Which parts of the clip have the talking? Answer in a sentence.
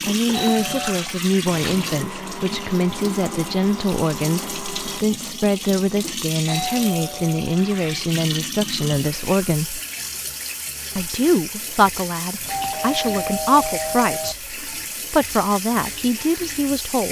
You can hear the talking from 0.1 to 9.8 s and from 10.9 to 17.0 s.